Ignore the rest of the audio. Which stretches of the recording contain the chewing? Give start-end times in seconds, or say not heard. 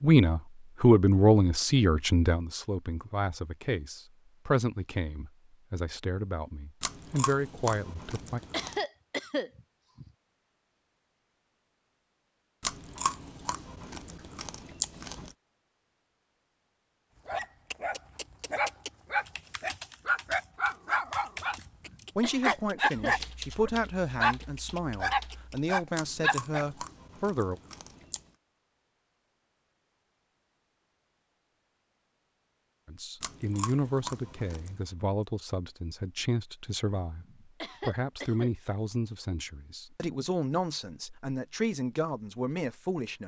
6.8-8.8, 12.6-15.3, 25.9-28.2, 33.2-34.8.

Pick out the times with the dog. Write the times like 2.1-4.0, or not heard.
17.2-26.6.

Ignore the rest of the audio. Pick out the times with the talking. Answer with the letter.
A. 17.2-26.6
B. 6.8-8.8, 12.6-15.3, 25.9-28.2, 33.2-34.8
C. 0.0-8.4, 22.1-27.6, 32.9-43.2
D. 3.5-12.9
C.